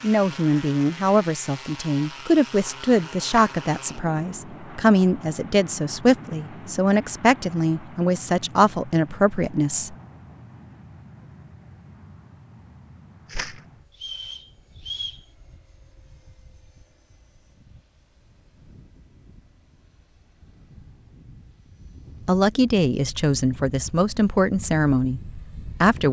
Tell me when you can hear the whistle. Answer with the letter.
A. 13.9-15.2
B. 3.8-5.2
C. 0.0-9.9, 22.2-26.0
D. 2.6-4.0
A.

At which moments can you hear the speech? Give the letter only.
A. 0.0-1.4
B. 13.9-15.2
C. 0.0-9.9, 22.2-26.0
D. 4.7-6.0
C.